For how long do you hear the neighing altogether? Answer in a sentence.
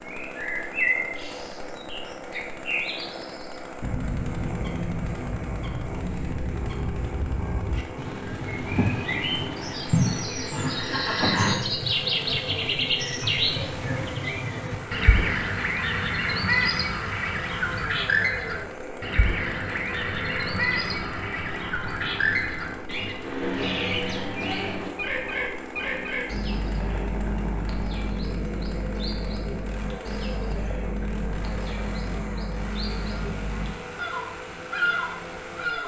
You can hear the neighing for 2 seconds altogether.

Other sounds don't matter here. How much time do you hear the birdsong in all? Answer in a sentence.
You can hear the birdsong for 36 seconds altogether.